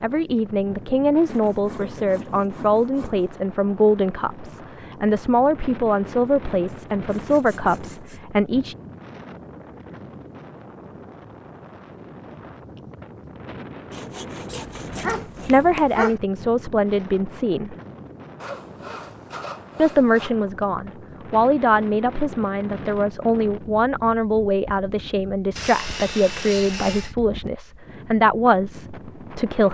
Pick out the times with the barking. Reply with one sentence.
You can hear the barking from 14.4 to 16.2 s.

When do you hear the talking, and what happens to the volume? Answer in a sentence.
The talking can be heard from 0.0 to 8.8 s, at a steady volume; briefly from 15.4 to 17.8 s; and from 19.8 to 29.7 s, at a steady volume.